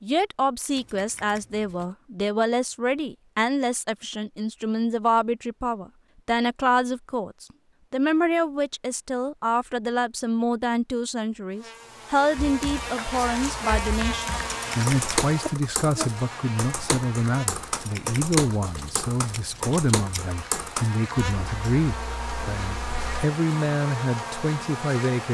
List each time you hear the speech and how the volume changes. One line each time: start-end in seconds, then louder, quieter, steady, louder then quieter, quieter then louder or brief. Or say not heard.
0.0-25.2 steady.